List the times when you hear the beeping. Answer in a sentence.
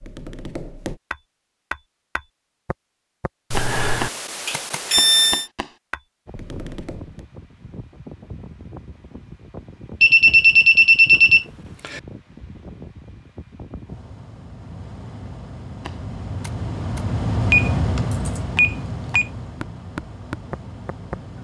The beeping can be heard from 3.5 to 5.5 s, from 10.0 to 12.0 s and from 17.5 to 19.2 s.